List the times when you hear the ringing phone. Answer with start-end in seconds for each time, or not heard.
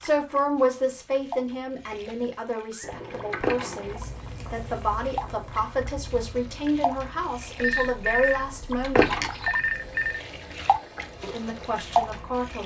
7.5-10.2.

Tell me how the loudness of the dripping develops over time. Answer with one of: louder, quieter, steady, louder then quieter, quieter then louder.
louder.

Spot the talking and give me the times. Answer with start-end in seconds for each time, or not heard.
0.0-9.1, 11.2-12.6.